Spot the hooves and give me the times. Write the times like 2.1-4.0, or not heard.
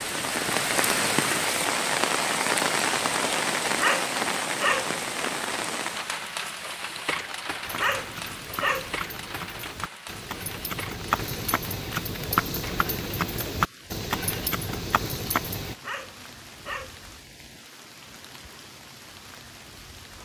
7.6-15.8.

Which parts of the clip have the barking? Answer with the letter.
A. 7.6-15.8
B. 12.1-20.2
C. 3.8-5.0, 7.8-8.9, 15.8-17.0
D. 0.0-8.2
C.